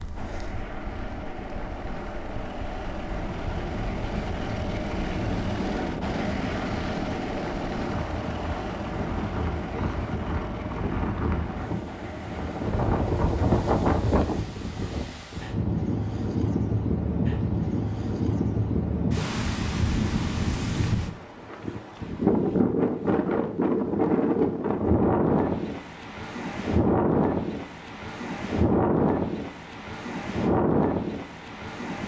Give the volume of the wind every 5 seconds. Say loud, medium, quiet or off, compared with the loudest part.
quiet, medium, loud, loud, loud, loud, loud.